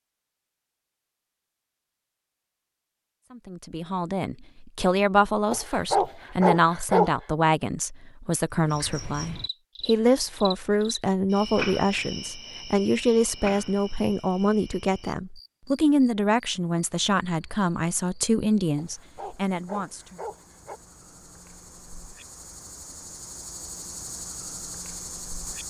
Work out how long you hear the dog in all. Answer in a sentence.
You can hear the dog for 4 seconds altogether.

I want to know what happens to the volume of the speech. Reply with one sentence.
The volume of the speech stays about the same.